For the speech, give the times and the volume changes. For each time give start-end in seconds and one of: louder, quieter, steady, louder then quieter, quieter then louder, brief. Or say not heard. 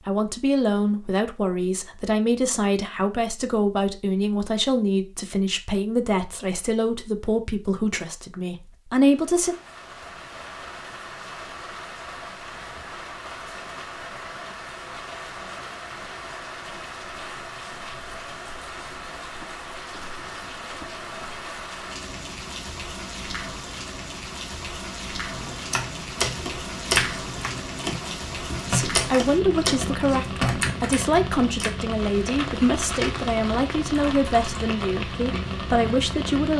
0.0-9.6 steady
28.7-36.5 steady.